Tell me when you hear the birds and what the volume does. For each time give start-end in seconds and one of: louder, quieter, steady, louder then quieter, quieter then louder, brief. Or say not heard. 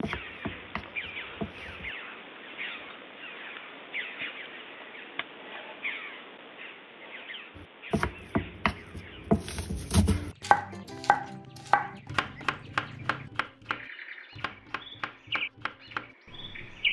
0.0-16.8 quieter then louder.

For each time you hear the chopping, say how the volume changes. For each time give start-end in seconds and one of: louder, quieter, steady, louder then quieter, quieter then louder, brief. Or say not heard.
0.0-1.9 brief
7.5-16.8 quieter.